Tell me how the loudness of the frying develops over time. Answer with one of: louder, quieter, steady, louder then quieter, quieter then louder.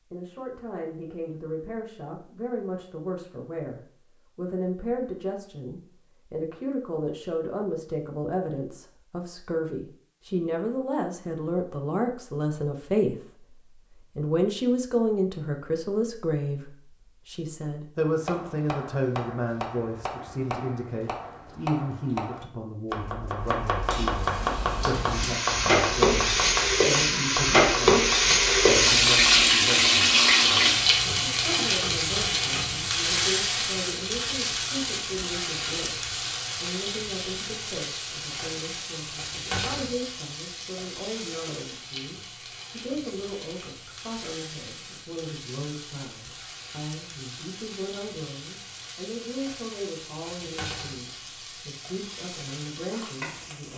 quieter.